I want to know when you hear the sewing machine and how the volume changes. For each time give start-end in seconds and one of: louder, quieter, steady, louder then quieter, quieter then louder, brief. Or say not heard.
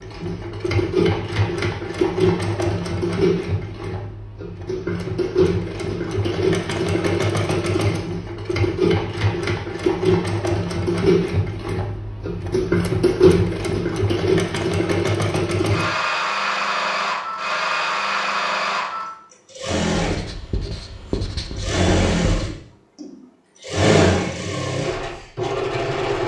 0.0-26.2 steady.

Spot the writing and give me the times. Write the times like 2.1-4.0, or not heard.
19.9-22.6.